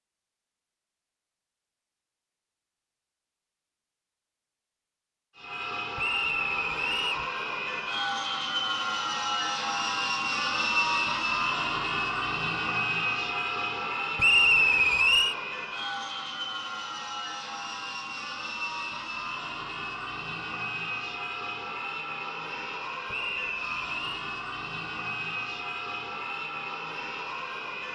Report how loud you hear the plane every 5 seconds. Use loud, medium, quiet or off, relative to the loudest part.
off, loud, loud, medium, medium, medium.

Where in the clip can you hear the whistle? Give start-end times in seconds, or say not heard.
6.0-7.2, 14.2-15.3, 23.1-24.2.